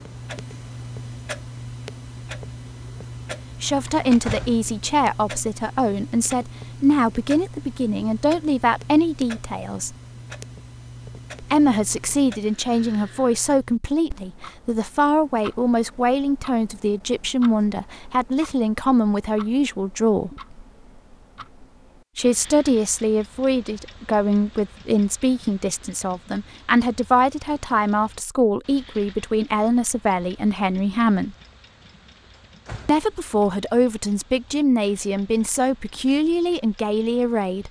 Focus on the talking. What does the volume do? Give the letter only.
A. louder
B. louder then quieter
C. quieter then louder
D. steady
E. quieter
D.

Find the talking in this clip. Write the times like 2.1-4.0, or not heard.
3.6-9.9, 11.4-20.3, 22.1-31.4, 32.9-37.6.